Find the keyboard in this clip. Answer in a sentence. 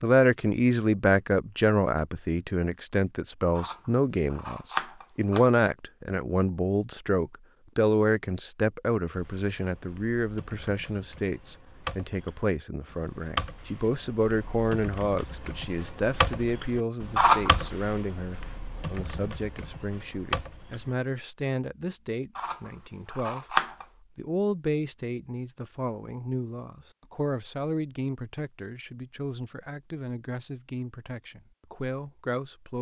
The keyboard can be heard from 9.2 to 20.9 s.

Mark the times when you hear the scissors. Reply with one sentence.
You can hear the scissors from 3.5 to 5.5 s, from 17.1 to 17.7 s and from 22.4 to 23.9 s.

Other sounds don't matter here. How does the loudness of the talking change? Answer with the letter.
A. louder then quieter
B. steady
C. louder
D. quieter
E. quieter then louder
D.